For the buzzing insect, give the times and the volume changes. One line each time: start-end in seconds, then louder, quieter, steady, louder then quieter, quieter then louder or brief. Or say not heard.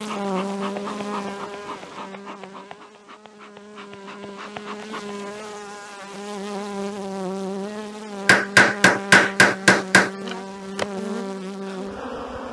0.0-12.4 quieter then louder.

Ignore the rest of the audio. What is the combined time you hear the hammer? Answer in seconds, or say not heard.
2 s.